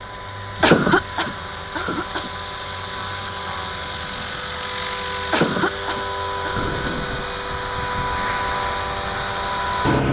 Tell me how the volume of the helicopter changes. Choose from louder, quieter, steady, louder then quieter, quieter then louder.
louder.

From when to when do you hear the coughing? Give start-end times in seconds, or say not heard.
0.6-2.3, 5.3-7.0.